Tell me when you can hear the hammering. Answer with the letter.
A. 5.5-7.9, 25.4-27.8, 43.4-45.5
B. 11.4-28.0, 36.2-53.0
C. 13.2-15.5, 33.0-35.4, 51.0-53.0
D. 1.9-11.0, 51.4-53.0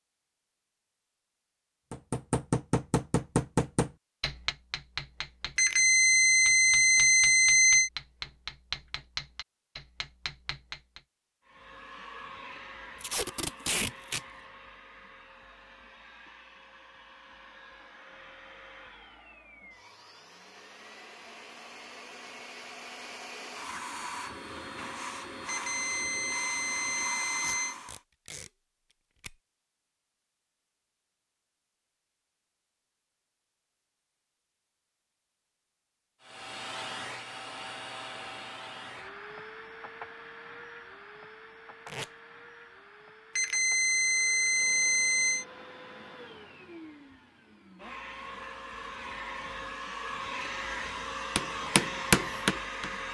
D.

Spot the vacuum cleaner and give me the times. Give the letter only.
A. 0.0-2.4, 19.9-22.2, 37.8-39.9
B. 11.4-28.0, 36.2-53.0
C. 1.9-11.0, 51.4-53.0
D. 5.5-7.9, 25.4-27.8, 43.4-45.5
B.